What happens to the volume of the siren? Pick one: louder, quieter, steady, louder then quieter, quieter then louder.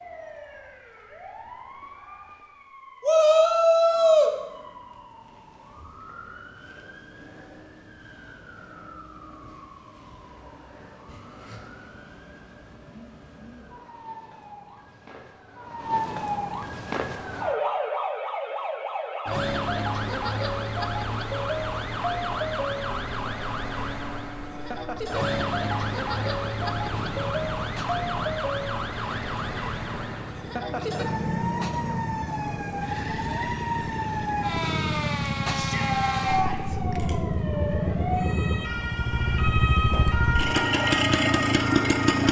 louder.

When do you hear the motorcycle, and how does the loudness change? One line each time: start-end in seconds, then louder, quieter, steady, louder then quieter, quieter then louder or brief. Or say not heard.
22.9-42.2 louder.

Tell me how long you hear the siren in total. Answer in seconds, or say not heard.
42 s.